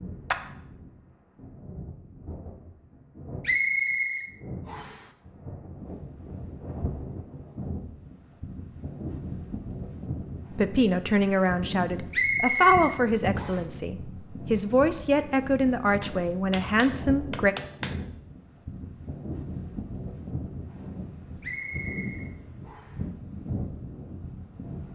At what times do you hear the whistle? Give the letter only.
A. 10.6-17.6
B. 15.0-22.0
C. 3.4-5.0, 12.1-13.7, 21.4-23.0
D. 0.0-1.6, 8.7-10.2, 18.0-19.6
C.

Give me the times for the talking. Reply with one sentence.
You can hear the talking from 10.6 to 17.6 s.